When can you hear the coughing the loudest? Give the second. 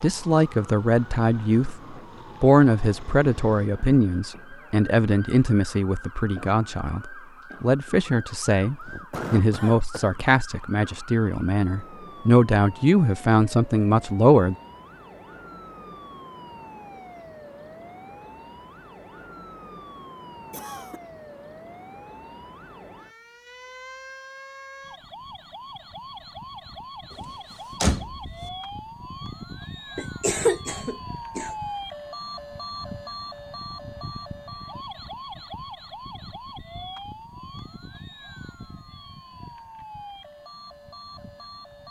30 s.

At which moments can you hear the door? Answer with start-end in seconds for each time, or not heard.
27.1-28.4.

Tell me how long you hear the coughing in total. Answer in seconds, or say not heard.
4 s.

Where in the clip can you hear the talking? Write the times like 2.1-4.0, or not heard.
0.0-14.6.